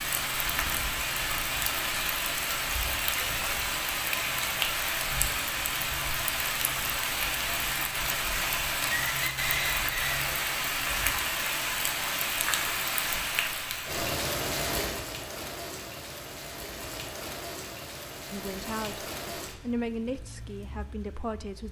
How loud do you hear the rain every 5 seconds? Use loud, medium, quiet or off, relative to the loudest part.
loud, loud, loud, medium, quiet.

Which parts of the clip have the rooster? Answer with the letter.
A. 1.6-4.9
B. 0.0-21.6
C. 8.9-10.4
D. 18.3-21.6
C.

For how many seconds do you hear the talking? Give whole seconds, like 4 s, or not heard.
3 s.